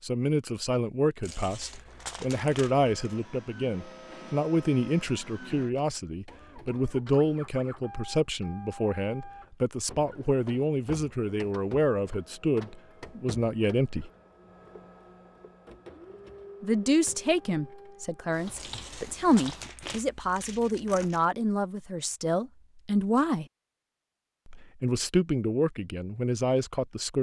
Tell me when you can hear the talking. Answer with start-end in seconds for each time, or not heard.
0.0-14.1, 16.6-23.4, 24.4-27.1.